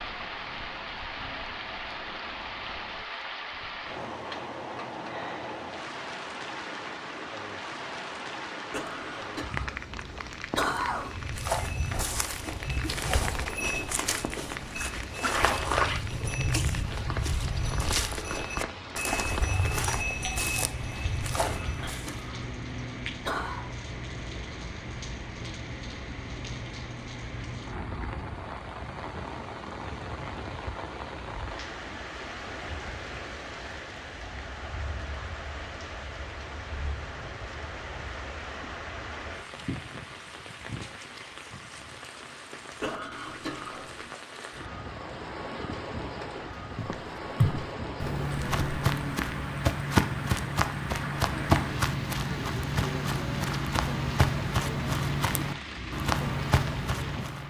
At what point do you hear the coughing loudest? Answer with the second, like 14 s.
11 s.